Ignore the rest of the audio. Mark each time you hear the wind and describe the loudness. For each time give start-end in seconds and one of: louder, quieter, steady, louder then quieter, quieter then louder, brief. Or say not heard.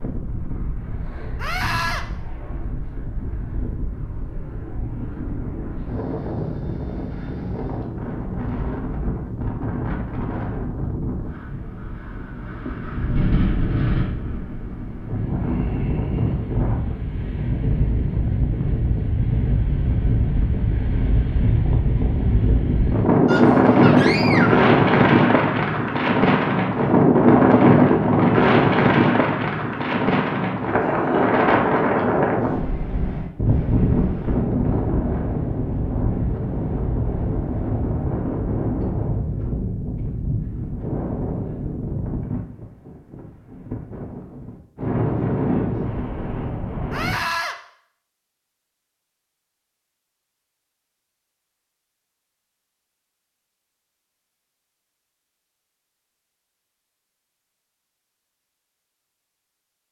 0.0-47.2 louder then quieter.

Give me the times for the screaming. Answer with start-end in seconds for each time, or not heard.
1.4-2.0, 23.2-24.7, 46.9-47.5.